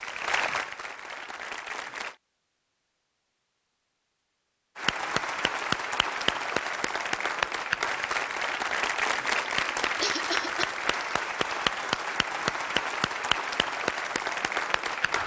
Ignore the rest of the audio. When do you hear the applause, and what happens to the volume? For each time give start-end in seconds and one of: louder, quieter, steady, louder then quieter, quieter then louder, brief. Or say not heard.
0.0-2.1 brief
4.8-15.2 steady.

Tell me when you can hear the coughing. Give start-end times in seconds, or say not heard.
10.0-10.7.